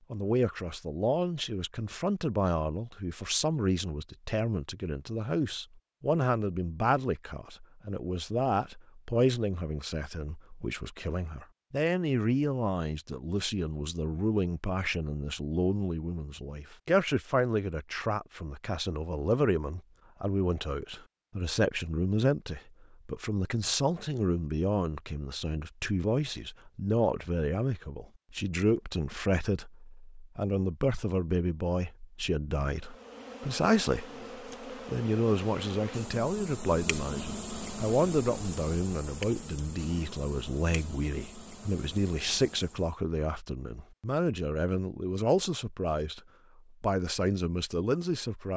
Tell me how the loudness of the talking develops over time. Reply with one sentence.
The loudness of the talking stays about the same.